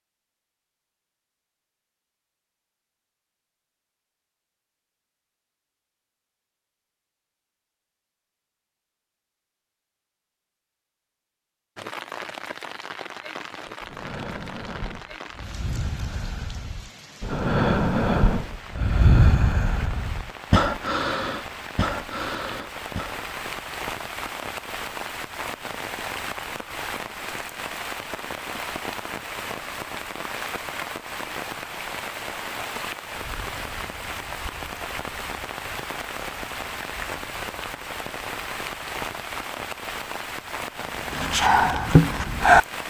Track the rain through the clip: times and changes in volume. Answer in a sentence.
The rain can be heard from 11.8 to 42.8 s, getting louder.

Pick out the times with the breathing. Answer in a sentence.
You can hear the breathing from 13.7 to 23.2 s and from 40.9 to 42.6 s.